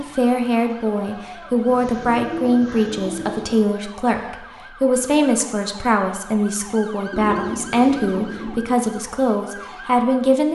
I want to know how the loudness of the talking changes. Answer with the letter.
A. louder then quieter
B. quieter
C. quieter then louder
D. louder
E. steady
E.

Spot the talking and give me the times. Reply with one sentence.
You can hear the talking from 0.0 to 10.5 s.